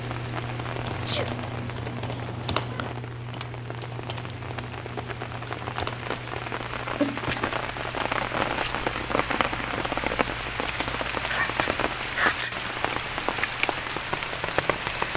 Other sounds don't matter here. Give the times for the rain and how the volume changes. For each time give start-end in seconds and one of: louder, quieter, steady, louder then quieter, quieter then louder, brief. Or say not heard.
0.0-15.1 louder.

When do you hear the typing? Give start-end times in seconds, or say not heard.
0.8-6.2.